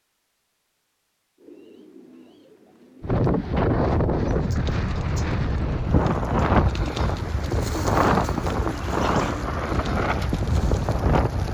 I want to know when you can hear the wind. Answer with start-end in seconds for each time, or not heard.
3.0-11.4.